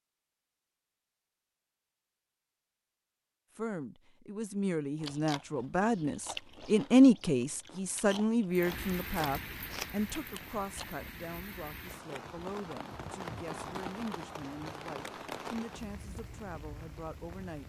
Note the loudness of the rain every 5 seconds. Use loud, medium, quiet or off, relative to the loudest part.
off, loud, loud, loud.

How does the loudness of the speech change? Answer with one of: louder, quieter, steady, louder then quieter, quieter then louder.
louder then quieter.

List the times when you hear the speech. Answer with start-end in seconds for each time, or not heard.
3.5-17.6.